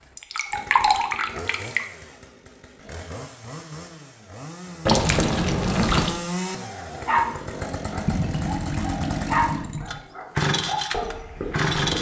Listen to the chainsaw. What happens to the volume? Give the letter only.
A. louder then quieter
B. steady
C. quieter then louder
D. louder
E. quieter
D.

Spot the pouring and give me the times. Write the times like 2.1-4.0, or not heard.
0.1-1.9, 4.8-6.2, 8.1-10.0.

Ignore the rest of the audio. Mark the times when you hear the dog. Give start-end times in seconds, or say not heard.
6.7-11.9.